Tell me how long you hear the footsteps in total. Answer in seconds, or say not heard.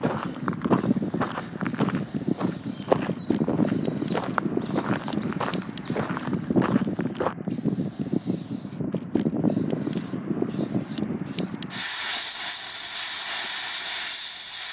7 s.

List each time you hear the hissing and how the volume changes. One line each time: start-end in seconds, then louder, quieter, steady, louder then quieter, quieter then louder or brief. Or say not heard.
0.0-14.6 steady.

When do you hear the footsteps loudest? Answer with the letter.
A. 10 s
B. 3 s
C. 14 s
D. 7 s
B.